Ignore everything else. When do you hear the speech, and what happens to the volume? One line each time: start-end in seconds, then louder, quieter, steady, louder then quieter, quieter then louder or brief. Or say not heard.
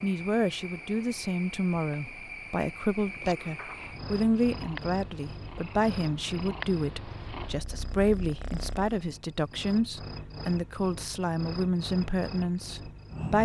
0.0-13.4 steady.